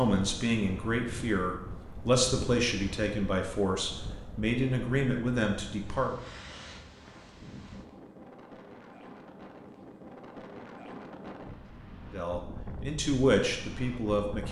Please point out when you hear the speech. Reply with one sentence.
You can hear the speech from 0.0 to 6.2 s and from 12.1 to 14.4 s.